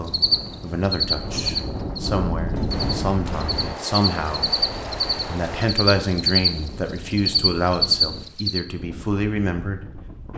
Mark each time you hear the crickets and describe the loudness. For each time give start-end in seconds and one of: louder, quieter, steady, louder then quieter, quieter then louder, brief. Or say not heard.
0.1-8.6 quieter then louder.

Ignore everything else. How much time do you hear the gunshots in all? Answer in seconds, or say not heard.
3 s.